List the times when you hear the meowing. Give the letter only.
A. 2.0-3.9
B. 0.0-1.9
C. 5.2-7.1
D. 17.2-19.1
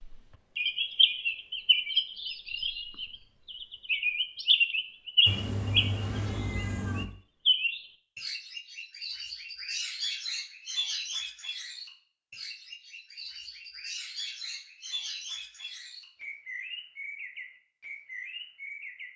C.